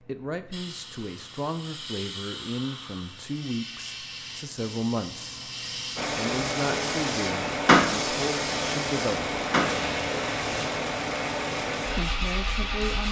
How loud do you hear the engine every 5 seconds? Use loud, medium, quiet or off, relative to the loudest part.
off, loud, loud.